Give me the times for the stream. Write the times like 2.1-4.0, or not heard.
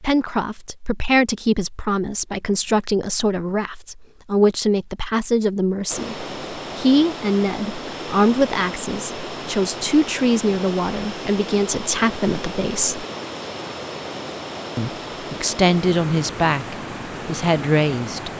5.8-18.3.